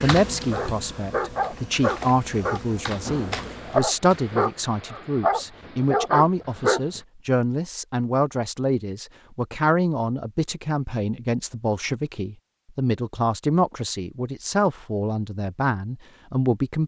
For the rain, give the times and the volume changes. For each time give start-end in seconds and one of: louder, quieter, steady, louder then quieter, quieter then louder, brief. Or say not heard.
not heard.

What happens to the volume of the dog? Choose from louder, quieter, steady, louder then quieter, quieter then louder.
quieter then louder.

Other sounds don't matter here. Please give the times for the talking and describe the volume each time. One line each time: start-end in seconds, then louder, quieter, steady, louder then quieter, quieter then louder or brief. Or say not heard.
0.0-16.8 steady.